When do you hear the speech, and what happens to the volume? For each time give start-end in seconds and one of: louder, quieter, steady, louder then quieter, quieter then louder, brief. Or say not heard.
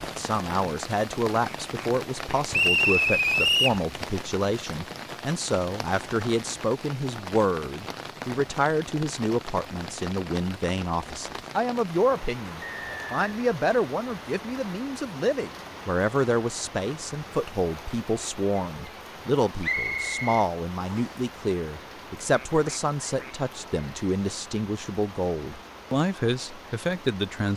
0.0-27.5 steady.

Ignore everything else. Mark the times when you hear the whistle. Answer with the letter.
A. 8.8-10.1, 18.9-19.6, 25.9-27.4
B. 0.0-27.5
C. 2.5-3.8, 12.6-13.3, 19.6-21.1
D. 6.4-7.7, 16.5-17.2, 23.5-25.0
C.